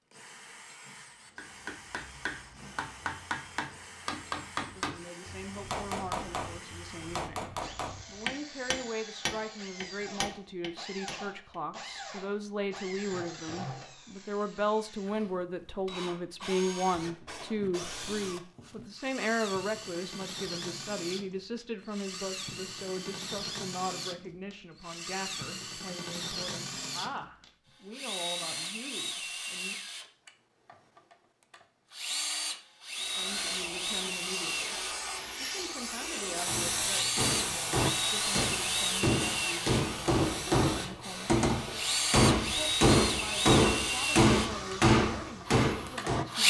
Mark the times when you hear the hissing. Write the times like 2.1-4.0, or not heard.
32.9-46.4.